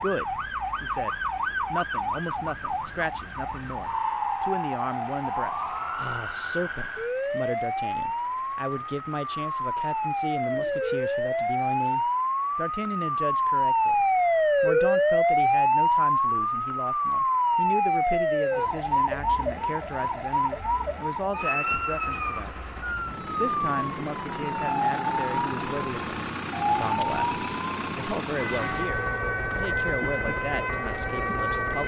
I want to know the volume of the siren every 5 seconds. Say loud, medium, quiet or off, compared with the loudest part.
medium, medium, loud, loud, medium, medium, medium.